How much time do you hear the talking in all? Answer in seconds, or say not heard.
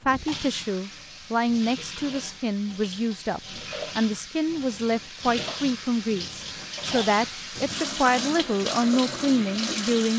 10 s.